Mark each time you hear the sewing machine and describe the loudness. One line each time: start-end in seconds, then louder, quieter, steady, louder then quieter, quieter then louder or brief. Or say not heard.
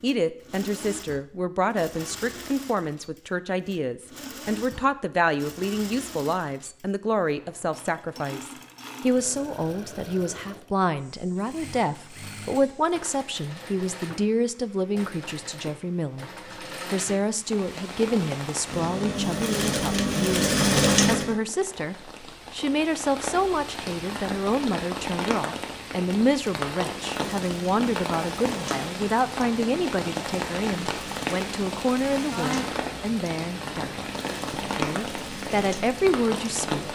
0.0-21.4 louder
27.1-36.9 steady.